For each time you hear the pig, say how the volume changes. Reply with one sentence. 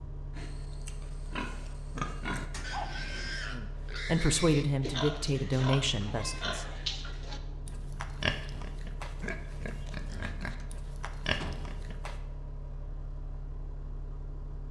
You can hear the pig from 0.3 to 12.2 s, at a steady volume.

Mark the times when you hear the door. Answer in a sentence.
You can hear the door from 2.5 to 3.4 s and from 10.6 to 11.8 s.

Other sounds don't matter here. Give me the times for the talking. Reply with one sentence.
You can hear the talking from 3.5 to 6.7 s.